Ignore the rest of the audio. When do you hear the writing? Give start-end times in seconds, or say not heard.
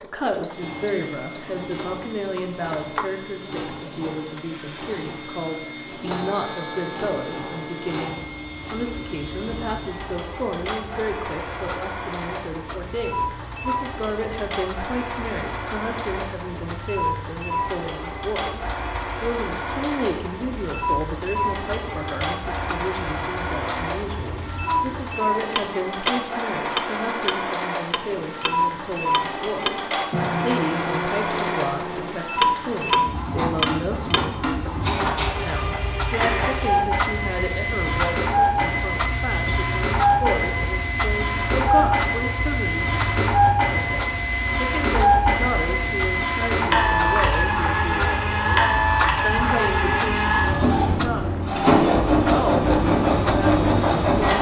not heard.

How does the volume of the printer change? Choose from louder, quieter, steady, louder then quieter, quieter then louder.
louder.